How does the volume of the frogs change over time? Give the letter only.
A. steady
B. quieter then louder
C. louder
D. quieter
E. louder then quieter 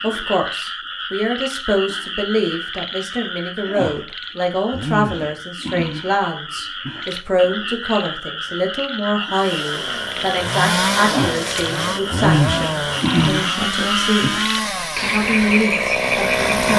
C.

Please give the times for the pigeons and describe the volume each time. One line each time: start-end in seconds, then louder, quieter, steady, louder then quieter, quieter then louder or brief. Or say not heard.
not heard.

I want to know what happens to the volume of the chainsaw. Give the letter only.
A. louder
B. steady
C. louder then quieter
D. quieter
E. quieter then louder
B.